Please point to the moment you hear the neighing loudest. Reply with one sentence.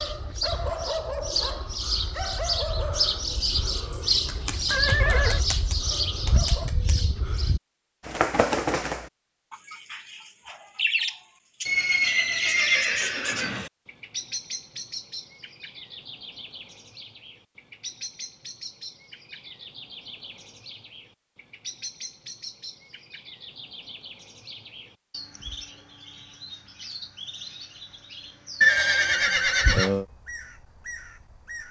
The loudest moment of the neighing is at 29 seconds.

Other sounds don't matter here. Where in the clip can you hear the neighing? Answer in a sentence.
The neighing can be heard from 4.7 to 5.4 s, from 11.7 to 13.7 s and from 28.6 to 30.1 s.